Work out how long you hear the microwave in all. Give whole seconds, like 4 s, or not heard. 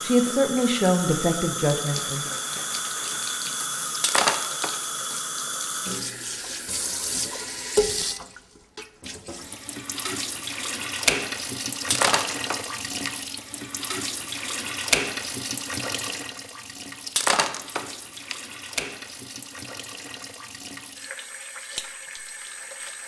not heard.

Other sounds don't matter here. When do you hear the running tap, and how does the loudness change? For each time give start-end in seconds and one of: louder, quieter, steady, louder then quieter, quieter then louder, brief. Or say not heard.
0.0-23.0 quieter.